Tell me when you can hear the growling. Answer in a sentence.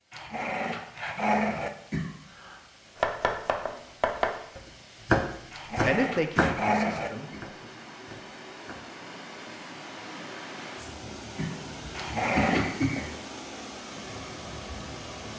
You can hear the growling from 0.1 to 1.7 s, from 5.5 to 7.1 s and from 11.9 to 12.8 s.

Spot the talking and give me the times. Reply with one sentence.
The talking can be heard from 5.8 to 7.8 s.